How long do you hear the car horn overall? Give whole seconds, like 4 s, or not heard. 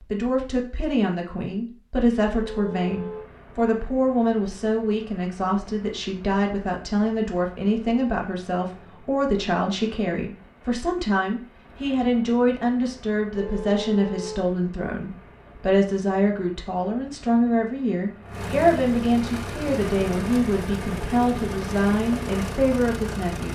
2 s.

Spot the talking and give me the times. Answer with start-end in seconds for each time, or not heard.
0.0-23.5.